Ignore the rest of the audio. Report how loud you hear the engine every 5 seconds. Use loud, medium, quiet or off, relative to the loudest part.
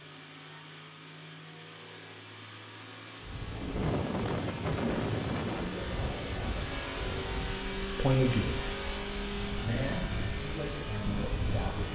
medium, loud, loud.